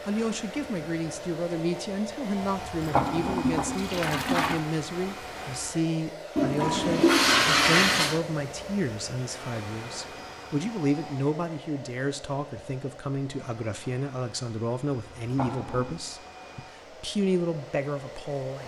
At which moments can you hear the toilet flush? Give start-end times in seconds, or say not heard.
2.4-4.6, 6.3-8.2, 15.2-15.9.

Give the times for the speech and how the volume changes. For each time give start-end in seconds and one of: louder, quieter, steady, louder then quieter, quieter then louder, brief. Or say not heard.
0.1-18.6 steady.